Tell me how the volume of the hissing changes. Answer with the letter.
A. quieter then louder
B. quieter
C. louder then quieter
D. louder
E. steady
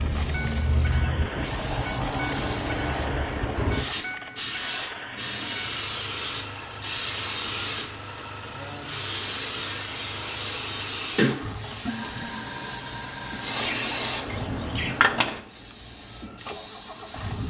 E.